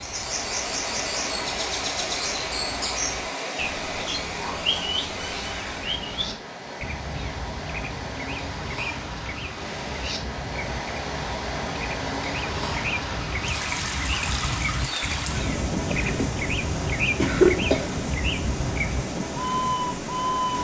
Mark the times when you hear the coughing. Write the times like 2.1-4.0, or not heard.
15.9-16.3, 17.1-17.9.